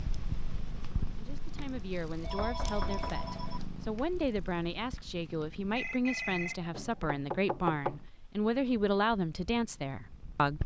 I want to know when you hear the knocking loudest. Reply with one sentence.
The volume of the knocking peaks at 8 seconds.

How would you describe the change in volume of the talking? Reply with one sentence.
The loudness of the talking goes up.